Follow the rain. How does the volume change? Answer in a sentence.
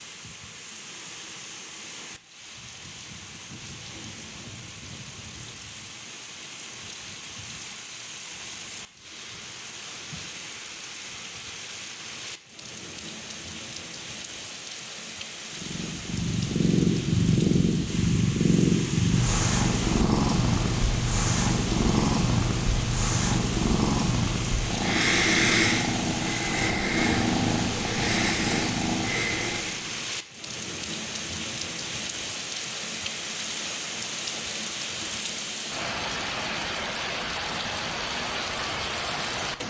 The volume of the rain goes up.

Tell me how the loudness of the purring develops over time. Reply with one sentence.
The volume of the purring stays about the same.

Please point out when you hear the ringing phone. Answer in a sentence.
The ringing phone can't be heard in this clip.